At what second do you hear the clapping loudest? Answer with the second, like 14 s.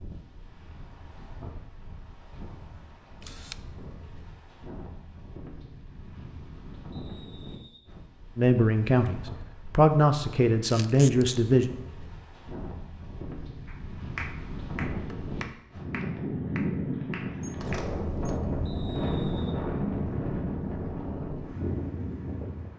14 s.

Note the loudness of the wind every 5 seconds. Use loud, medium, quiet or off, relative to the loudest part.
quiet, quiet, medium, loud, loud.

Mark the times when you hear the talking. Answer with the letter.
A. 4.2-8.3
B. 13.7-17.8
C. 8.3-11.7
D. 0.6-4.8
C.